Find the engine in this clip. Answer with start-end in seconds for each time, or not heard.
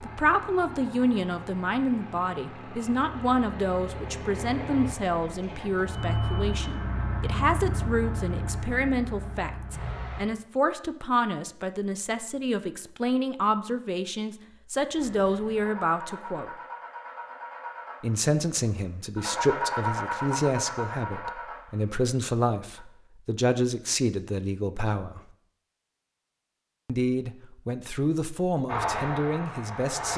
0.0-10.2, 14.9-22.9, 28.6-30.1.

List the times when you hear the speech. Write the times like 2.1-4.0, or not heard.
0.0-16.5, 18.0-25.2, 26.9-30.1.